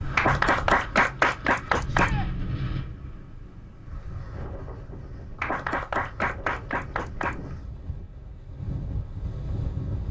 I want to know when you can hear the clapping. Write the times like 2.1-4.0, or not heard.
0.1-2.1, 5.3-7.3.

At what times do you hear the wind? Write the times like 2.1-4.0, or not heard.
0.0-10.0.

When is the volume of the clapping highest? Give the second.
1 s.